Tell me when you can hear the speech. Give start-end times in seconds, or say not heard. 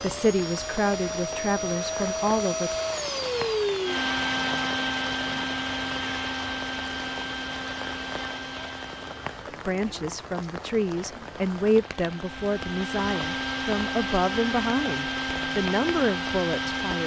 0.0-2.8, 9.4-17.0.